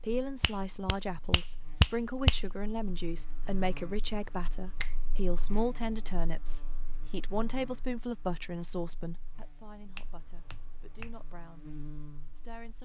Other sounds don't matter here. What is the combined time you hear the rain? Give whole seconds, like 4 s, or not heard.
not heard.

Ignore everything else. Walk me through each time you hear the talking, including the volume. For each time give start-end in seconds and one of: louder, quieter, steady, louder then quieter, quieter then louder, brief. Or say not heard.
0.0-12.8 quieter.